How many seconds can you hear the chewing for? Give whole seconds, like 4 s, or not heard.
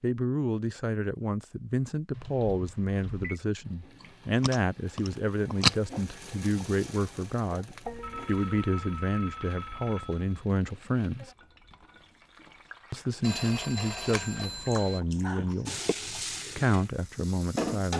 4 s.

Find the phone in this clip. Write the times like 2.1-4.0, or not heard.
2.1-3.4, 7.8-10.4, 13.2-15.0.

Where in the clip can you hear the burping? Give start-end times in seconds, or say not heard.
not heard.